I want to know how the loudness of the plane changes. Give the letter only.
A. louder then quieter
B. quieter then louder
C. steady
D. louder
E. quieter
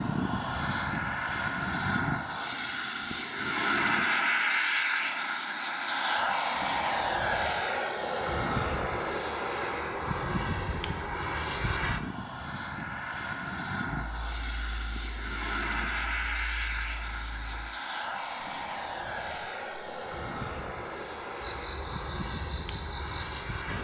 E.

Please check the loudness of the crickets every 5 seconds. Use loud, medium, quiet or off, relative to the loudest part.
loud, loud, medium, quiet, quiet.